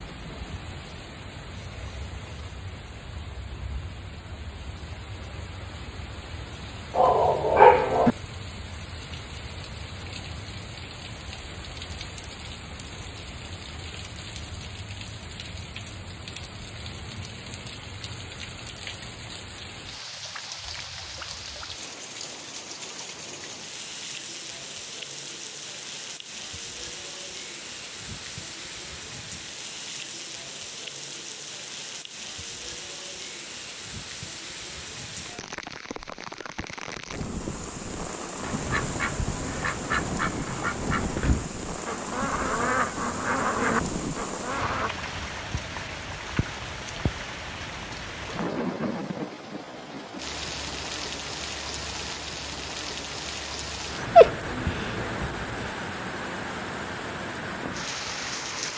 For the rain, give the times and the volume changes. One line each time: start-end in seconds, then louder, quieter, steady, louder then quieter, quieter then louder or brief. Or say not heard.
0.0-58.7 louder.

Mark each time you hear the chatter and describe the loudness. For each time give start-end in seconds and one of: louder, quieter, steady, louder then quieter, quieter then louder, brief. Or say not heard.
not heard.